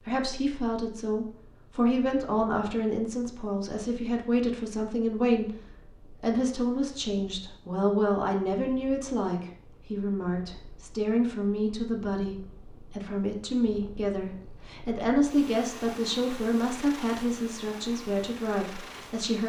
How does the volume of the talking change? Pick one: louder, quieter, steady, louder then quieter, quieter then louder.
steady.